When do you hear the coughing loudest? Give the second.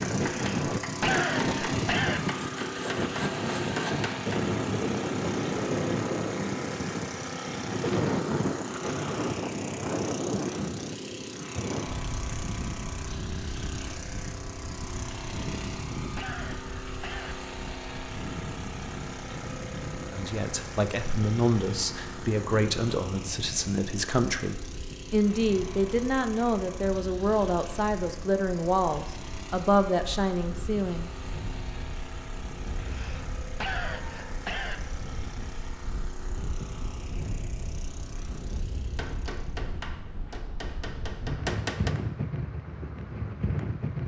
1 s.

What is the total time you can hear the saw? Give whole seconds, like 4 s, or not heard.
2 s.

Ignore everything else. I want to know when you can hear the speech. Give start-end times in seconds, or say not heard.
20.1-31.1.